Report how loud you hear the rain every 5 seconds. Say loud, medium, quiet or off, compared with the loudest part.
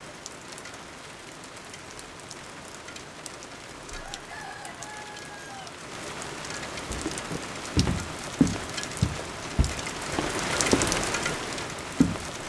quiet, medium, loud.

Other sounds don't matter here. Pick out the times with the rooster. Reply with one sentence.
You can hear the rooster from 4.0 to 5.8 s.